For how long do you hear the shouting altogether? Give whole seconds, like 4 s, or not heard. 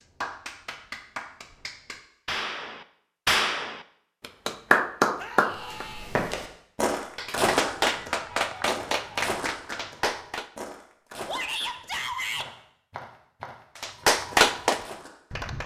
2 s.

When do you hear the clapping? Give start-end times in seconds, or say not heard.
0.0-5.8, 7.0-10.4, 13.8-15.6.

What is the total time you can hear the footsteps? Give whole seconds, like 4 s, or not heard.
9 s.